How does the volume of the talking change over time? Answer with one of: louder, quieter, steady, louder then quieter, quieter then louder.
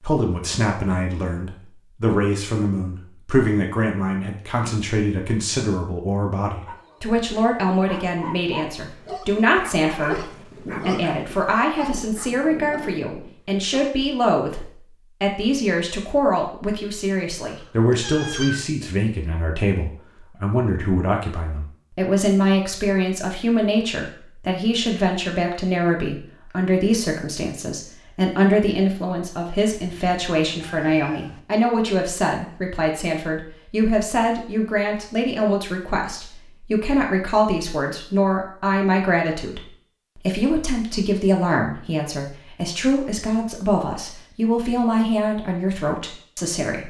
steady.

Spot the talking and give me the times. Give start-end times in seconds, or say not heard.
0.0-46.8.